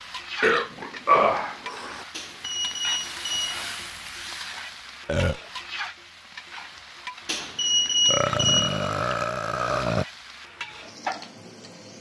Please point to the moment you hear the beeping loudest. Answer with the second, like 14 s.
8 s.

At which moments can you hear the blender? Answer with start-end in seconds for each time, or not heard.
not heard.